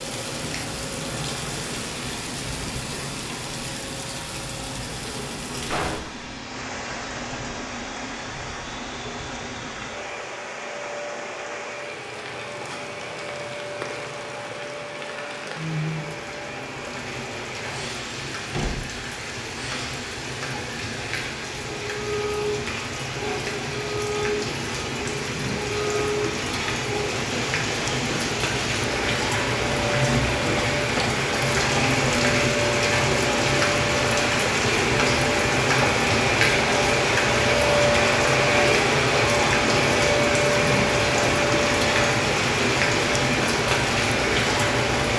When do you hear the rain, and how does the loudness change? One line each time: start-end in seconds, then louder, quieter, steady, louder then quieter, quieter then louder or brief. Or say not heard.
0.0-45.1 louder.